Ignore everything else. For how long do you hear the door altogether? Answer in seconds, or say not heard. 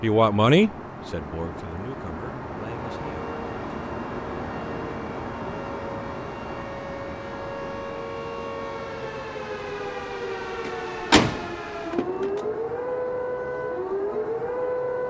2 s.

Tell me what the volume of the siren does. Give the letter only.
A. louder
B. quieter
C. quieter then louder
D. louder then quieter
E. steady
A.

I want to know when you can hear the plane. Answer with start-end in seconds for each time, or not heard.
0.0-15.0.